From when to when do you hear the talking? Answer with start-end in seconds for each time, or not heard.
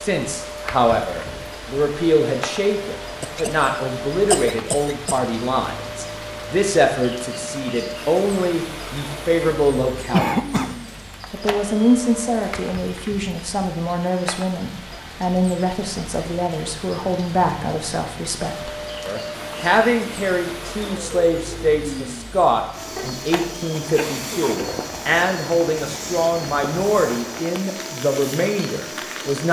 0.0-10.7, 11.3-29.4.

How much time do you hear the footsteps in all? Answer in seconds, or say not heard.
not heard.